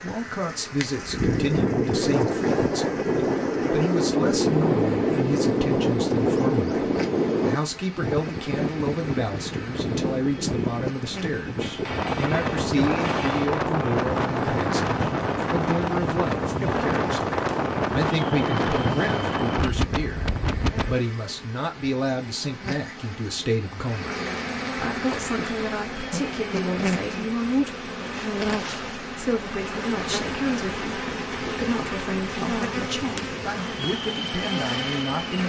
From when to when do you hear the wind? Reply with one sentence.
You can hear the wind from 0.1 to 21.0 s.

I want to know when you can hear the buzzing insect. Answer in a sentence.
You can hear the buzzing insect from 0.0 to 35.4 s.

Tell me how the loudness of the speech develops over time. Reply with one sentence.
The volume of the speech stays about the same.